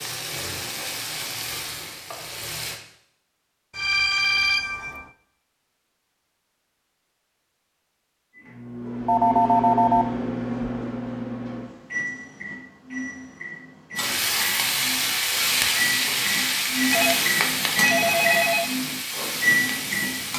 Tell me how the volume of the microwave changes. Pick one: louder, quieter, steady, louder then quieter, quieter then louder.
quieter then louder.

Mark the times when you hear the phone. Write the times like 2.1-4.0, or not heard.
3.8-5.0, 9.1-10.1, 16.9-18.8.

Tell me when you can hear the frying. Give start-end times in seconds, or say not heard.
0.0-2.8, 13.9-20.3.